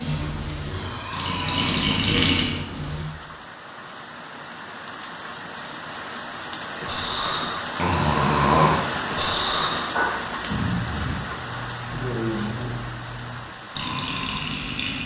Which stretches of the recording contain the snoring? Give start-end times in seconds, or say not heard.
0.0-3.1, 6.7-15.0.